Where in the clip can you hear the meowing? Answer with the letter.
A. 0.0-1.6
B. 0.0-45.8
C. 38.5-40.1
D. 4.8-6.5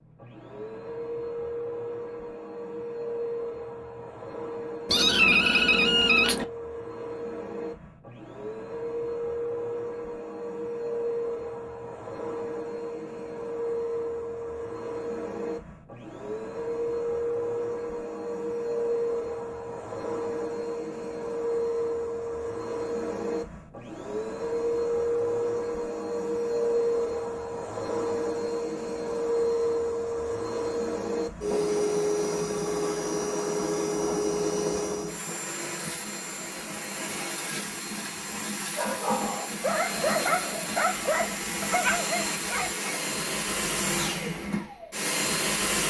D.